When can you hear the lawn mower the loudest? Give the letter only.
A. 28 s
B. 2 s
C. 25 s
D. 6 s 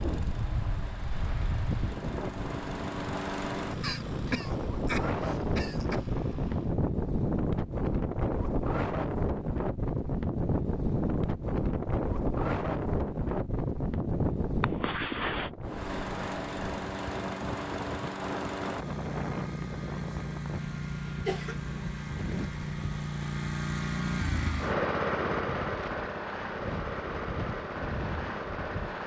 C.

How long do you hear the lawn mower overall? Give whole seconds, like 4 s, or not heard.
20 s.